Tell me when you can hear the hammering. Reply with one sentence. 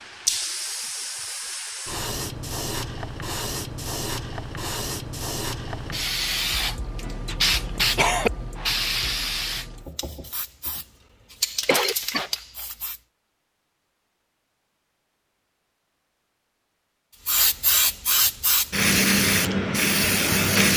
The hammering can't be heard in this clip.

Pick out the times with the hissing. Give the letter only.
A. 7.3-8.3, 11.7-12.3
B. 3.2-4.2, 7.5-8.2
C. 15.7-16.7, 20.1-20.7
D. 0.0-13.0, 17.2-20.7
D.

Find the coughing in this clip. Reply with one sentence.
You can hear the coughing from 7.3 to 8.3 s and from 11.7 to 12.3 s.